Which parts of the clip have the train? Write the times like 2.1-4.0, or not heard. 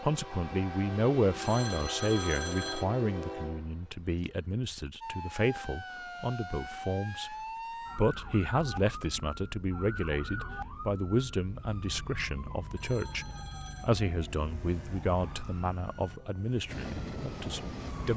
0.0-4.8, 16.6-18.1.